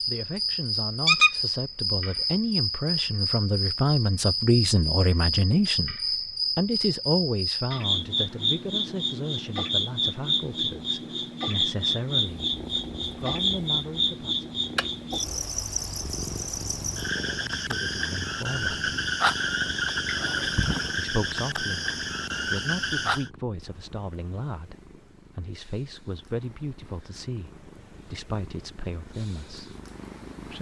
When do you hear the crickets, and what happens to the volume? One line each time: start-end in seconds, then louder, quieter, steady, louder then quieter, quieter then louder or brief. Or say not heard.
0.0-23.3 steady.